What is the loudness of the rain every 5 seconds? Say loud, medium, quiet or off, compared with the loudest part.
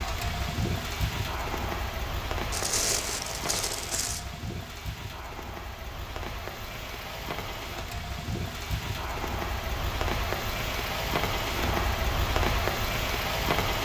medium, medium, loud.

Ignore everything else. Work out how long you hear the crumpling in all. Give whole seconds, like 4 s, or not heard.
2 s.